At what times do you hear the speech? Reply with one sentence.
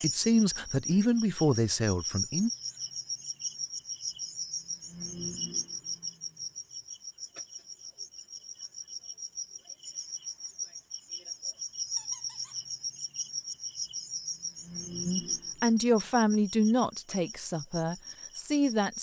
The speech can be heard from 0.0 to 2.5 s and from 15.1 to 18.9 s.